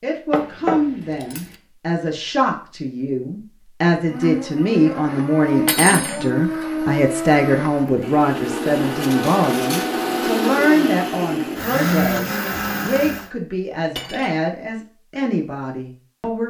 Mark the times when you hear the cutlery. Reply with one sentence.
The cutlery can be heard from 0.3 to 1.6 s, from 5.7 to 6.3 s, from 9.0 to 9.9 s and from 13.9 to 14.3 s.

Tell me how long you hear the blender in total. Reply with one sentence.
You can hear the blender for 9 seconds altogether.